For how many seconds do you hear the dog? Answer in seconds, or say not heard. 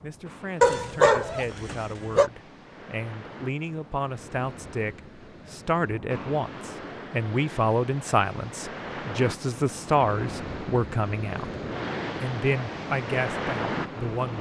2 s.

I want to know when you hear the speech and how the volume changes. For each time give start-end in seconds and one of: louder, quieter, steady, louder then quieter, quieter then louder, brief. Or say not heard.
0.0-11.5 louder
12.2-14.3 brief.